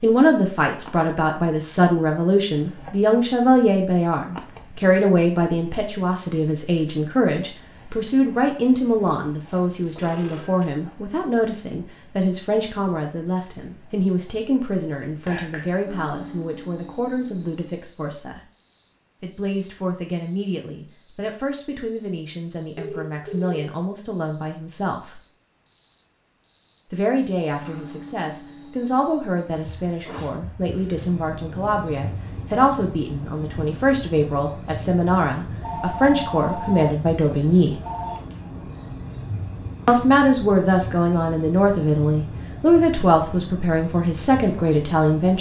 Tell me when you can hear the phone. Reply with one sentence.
The phone can be heard from 9.9 to 10.8 s, from 22.8 to 23.6 s, from 35.6 to 37.0 s and from 37.8 to 38.2 s.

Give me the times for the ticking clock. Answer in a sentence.
The ticking clock can't be heard in this clip.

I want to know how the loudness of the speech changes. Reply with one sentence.
The volume of the speech goes down, then up.